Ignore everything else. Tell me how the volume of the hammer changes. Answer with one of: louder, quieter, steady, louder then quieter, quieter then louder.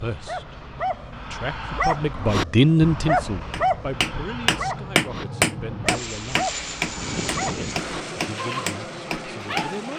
quieter.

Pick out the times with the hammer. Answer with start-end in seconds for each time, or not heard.
3.5-9.9.